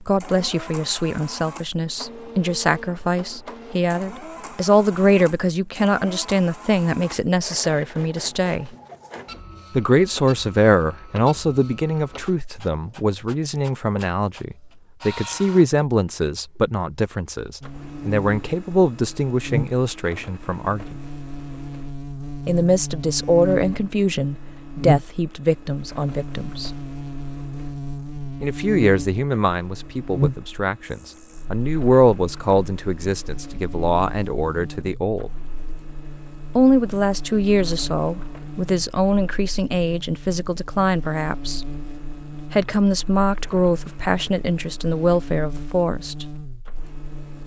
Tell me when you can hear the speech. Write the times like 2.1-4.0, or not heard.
0.0-8.7, 9.7-20.9, 22.4-26.7, 28.4-35.3, 36.5-41.6, 42.5-46.2.